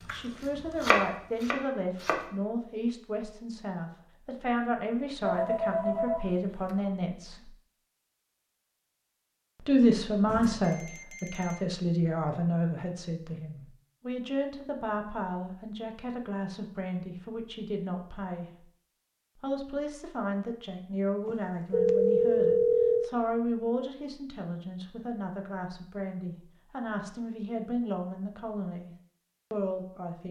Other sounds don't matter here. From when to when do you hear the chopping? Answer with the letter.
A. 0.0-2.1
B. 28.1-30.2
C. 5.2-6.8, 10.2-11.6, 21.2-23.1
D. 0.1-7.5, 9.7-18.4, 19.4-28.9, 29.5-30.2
A.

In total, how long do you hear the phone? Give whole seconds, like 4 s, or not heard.
5 s.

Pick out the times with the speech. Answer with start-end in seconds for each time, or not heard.
0.1-7.5, 9.7-18.4, 19.4-28.9, 29.5-30.2.